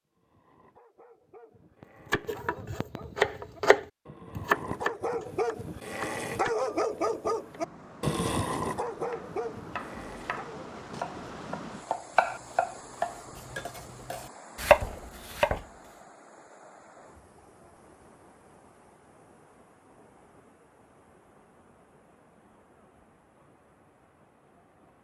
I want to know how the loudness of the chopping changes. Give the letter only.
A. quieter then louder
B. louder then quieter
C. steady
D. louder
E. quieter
A.